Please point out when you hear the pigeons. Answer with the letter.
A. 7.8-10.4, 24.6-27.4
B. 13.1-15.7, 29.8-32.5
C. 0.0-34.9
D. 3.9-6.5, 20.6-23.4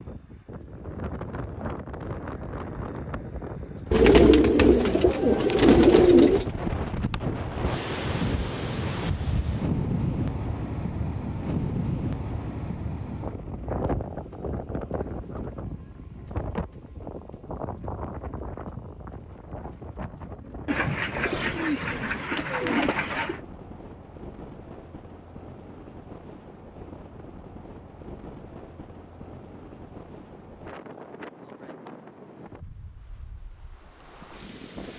D.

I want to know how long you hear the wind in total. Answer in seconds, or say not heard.
35 s.